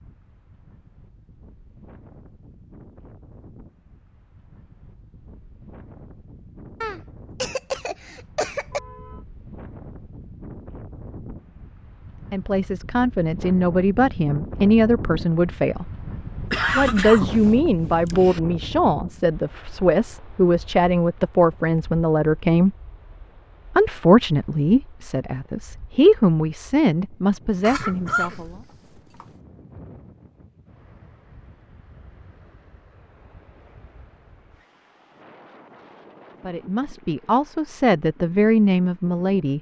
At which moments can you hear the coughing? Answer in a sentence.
The coughing can be heard from 6.8 to 8.8 s, from 16.5 to 18.4 s and from 27.6 to 29.2 s.